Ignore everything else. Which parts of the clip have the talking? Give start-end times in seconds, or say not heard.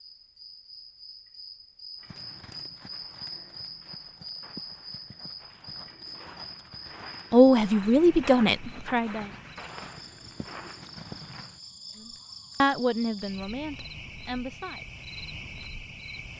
7.3-9.3, 12.6-14.8.